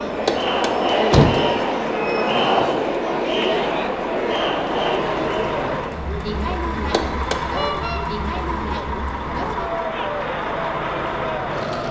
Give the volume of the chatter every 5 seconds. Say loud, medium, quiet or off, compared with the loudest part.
loud, medium, medium.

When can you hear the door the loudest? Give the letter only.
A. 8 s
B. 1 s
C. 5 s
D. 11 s
B.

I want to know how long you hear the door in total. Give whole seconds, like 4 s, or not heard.
2 s.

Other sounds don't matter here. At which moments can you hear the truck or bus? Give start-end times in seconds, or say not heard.
0.0-11.8.